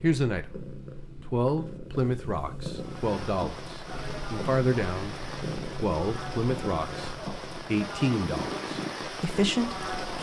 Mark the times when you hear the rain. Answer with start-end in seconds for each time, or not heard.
2.7-10.1.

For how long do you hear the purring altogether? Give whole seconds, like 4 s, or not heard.
10 s.